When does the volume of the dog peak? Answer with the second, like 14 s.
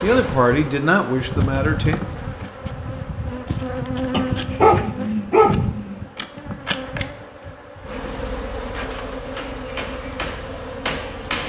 5 s.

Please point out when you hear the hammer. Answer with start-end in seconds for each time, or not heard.
8.7-11.4.